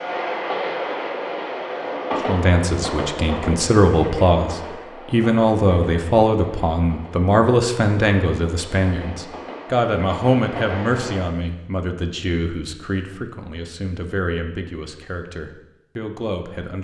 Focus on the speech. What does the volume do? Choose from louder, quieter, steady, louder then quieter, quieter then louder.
quieter.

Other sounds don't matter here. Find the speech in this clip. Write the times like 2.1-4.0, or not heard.
2.2-16.8.